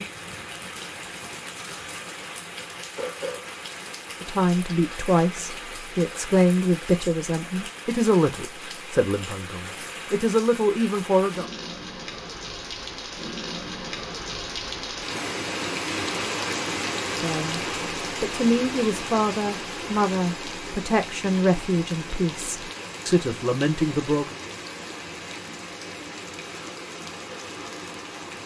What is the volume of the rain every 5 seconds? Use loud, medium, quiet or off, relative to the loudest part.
medium, medium, medium, loud, medium, medium.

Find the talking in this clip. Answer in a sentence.
The talking can be heard from 4.2 to 11.4 s, from 17.2 to 17.6 s and from 18.2 to 24.4 s.